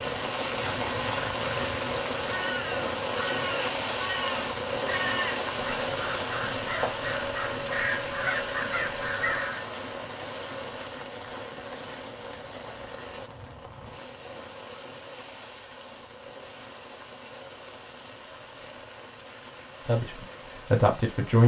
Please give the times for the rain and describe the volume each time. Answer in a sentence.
You can hear the rain from 0.0 to 21.4 s, getting quieter.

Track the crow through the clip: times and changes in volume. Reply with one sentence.
The crow can be heard from 0.4 to 9.7 s, getting louder.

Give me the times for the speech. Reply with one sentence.
You can hear the speech from 19.9 to 21.4 s.